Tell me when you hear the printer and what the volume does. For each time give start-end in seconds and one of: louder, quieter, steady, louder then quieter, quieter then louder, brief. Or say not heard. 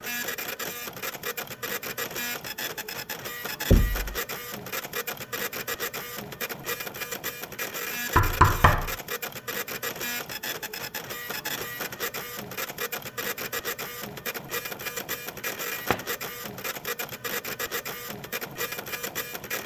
0.0-19.6 steady.